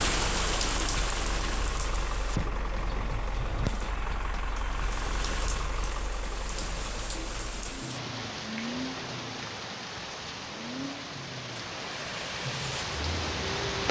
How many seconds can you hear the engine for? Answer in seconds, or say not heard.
14 s.